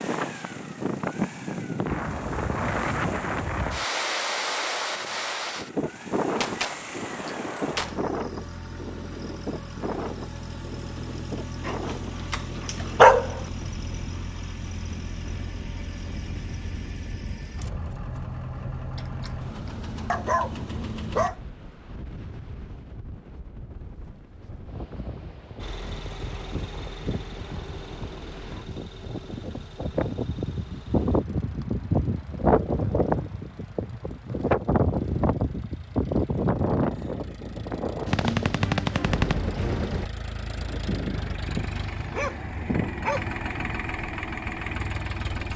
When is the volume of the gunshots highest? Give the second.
39 s.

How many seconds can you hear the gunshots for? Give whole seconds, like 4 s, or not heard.
4 s.